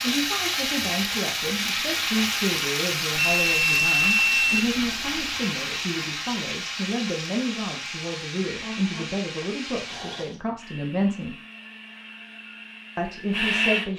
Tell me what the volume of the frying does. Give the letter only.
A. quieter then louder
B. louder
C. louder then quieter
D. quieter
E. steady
D.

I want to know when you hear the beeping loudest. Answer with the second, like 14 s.
4 s.